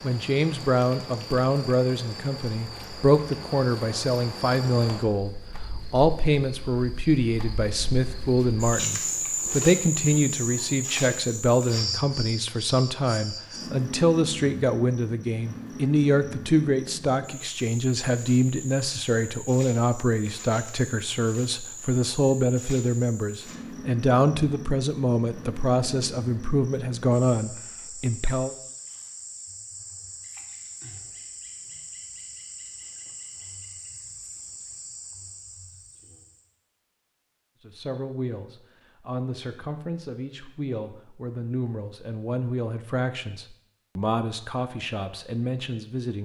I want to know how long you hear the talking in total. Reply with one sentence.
The talking can be heard for 37 seconds in total.